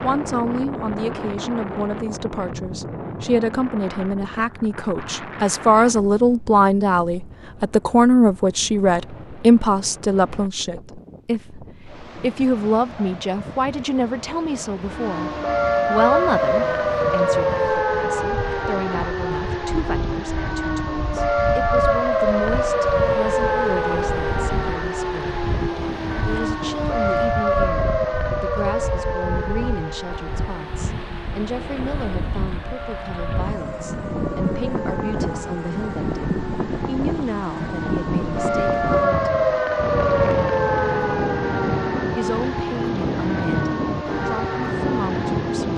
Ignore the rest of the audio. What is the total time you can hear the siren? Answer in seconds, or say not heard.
31 s.